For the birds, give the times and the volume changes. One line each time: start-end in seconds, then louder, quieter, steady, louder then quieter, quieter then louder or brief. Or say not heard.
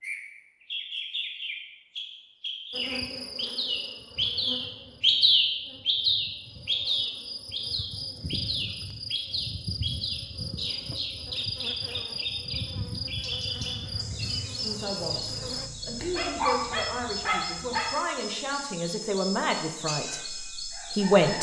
0.0-21.3 louder then quieter.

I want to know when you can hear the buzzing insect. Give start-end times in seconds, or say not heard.
2.7-15.7.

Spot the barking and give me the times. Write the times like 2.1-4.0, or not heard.
16.1-17.9.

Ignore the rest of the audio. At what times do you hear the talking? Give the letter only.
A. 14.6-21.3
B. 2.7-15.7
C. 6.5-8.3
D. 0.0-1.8
A.